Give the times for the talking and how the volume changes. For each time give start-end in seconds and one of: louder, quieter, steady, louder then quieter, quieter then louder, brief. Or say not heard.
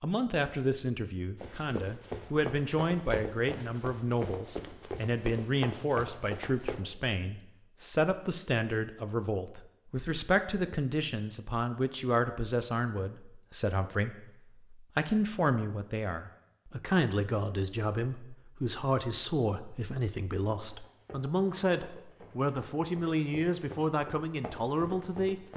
0.0-25.5 steady.